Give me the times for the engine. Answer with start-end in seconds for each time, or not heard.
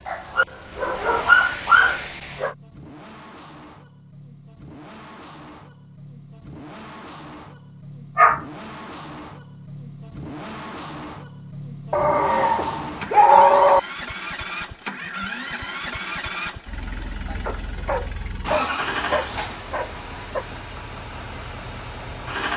0.0-22.5.